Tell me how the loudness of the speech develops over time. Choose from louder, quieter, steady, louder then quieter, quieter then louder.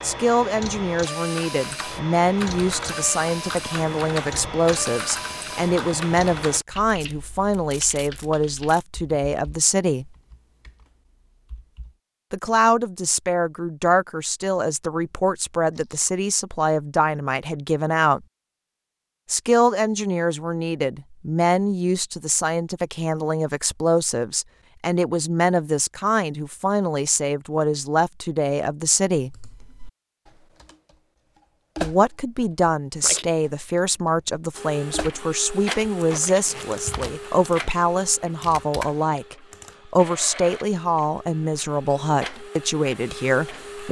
steady.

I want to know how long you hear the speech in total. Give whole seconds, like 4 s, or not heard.
38 s.